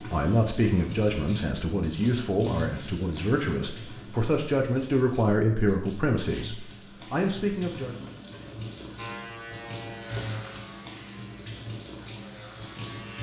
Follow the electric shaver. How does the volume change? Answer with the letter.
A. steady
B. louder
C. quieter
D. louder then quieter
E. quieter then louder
E.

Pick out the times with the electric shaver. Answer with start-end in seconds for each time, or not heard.
8.9-13.1.